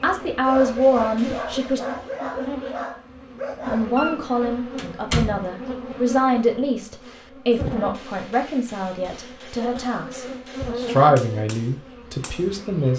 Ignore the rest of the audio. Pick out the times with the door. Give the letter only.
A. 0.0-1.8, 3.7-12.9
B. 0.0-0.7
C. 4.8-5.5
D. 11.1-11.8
C.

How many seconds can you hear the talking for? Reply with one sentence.
The talking can be heard for 11 seconds in total.